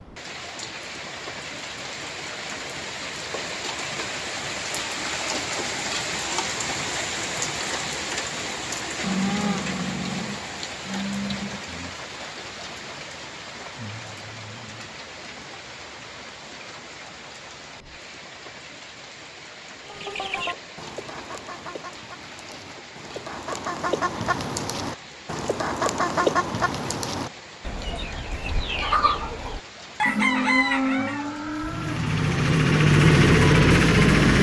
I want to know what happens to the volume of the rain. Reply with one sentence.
The volume of the rain goes down.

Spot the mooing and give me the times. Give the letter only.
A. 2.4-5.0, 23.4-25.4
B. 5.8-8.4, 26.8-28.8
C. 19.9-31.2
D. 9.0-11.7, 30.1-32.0
D.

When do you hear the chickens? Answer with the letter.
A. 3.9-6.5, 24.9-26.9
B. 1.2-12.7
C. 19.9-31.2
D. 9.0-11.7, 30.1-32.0
C.